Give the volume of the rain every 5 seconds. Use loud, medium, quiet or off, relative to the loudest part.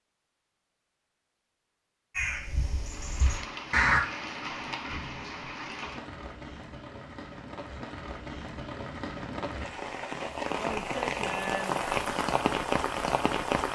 medium, medium, loud.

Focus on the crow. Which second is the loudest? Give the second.
4 s.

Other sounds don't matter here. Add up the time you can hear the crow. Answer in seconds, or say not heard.
2 s.